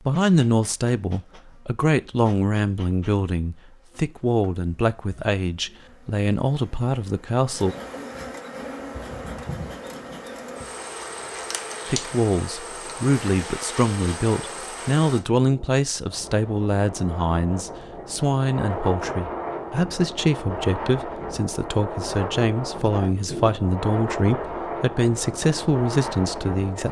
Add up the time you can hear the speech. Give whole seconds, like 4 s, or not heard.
23 s.